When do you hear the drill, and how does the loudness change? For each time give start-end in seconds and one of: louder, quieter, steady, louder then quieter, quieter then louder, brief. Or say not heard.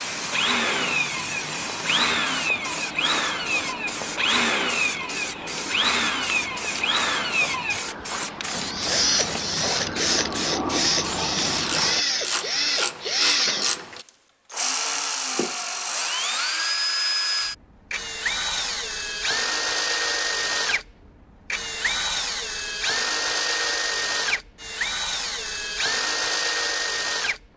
0.1-27.4 steady.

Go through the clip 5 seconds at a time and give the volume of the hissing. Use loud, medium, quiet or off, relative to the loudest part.
loud, loud, loud, off, off, off.